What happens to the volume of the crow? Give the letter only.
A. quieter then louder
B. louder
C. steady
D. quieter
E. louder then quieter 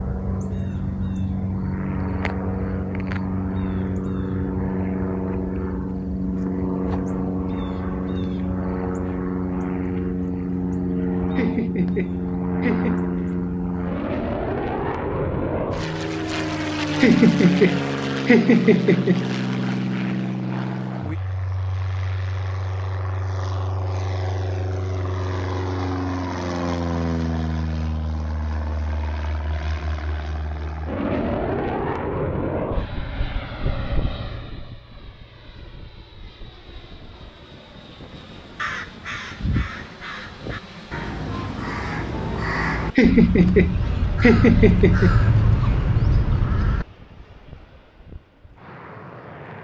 B.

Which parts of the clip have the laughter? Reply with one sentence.
You can hear the laughter from 11.3 to 13.1 s, from 17.0 to 19.2 s and from 43.0 to 45.2 s.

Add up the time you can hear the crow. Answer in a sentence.
The crow can be heard for 8 seconds in total.